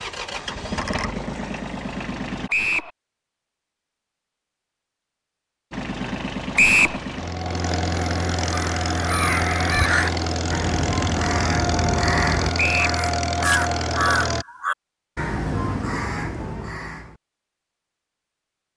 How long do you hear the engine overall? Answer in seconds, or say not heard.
11 s.